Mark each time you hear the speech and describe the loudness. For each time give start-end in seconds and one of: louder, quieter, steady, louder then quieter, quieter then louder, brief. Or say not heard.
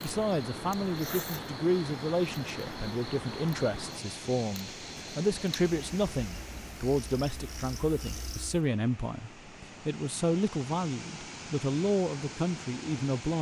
0.0-13.3 steady.